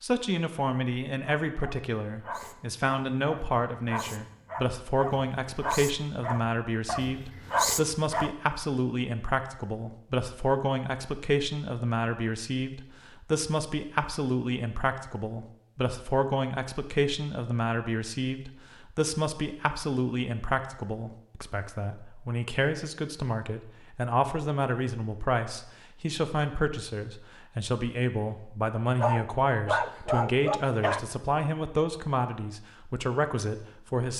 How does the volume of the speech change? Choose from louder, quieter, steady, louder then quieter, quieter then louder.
steady.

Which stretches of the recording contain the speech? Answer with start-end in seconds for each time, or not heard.
0.0-34.1.